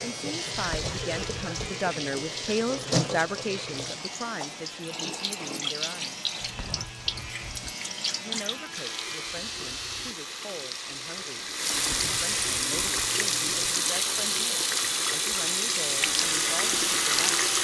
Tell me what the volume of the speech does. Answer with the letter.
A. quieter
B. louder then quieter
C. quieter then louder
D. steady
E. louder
A.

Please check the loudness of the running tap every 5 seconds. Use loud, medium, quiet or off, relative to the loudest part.
medium, medium, loud, loud.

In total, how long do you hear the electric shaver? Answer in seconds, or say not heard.
12 s.